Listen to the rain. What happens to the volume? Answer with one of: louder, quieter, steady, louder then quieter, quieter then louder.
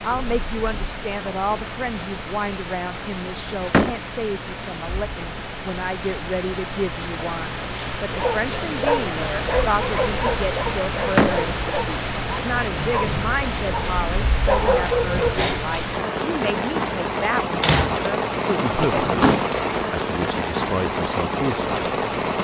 louder.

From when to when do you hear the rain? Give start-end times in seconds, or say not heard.
0.0-22.4.